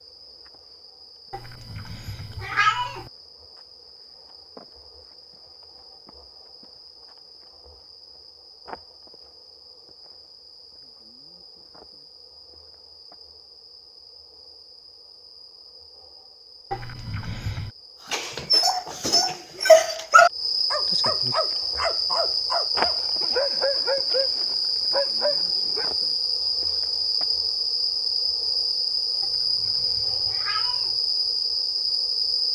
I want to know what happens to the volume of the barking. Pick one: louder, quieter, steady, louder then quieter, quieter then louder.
quieter.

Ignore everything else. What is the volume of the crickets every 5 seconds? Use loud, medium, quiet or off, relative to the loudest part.
quiet, quiet, quiet, quiet, loud, loud, loud.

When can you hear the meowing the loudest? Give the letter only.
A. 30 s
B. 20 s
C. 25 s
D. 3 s
D.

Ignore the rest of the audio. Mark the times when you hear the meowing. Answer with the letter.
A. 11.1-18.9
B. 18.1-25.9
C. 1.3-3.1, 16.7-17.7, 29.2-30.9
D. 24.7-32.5
C.